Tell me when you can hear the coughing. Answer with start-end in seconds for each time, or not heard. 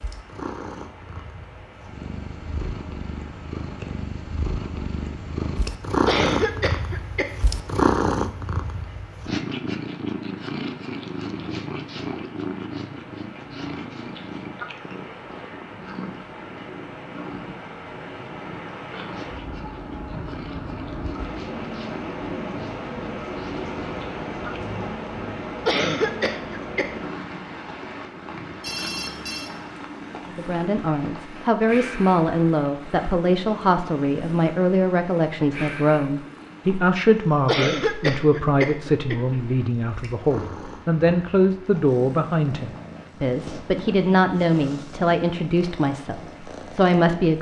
6.0-7.5, 25.6-26.9, 37.5-39.4.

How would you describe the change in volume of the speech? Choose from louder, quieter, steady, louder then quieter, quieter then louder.
steady.